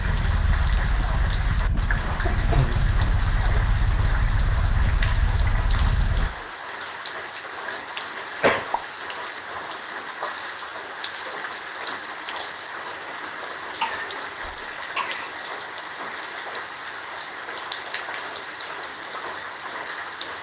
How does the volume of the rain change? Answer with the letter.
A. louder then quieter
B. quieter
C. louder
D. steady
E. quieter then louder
D.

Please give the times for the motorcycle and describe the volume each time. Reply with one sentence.
The motorcycle can be heard from 0.0 to 6.3 s, at a steady volume.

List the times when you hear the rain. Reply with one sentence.
You can hear the rain from 0.0 to 20.3 s.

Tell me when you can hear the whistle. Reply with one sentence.
You can't hear the whistle here.